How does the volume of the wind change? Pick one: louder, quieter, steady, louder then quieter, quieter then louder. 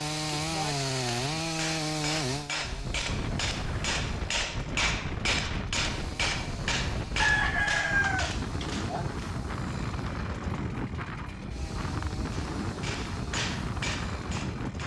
steady.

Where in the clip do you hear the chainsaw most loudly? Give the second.
1 s.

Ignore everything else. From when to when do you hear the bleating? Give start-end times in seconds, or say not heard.
not heard.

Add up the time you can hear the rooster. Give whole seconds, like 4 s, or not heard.
2 s.